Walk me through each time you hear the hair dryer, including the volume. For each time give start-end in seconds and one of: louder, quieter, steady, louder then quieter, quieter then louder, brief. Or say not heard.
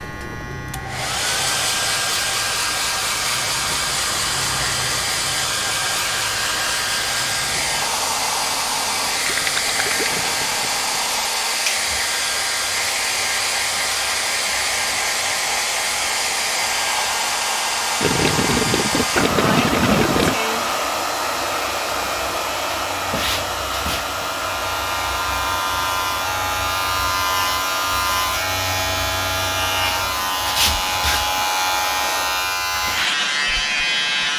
0.0-34.3 quieter.